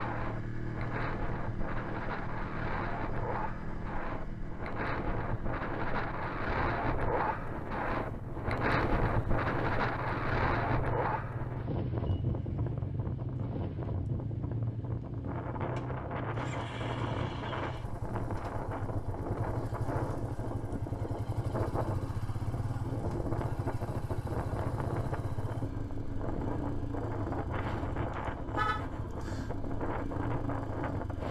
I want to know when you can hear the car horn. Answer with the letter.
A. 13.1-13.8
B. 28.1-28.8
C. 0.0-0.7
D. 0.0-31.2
B.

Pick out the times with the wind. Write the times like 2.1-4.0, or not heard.
0.0-31.2.